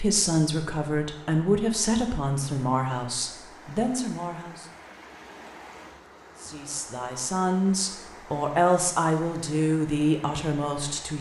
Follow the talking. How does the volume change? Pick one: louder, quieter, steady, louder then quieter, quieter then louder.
quieter then louder.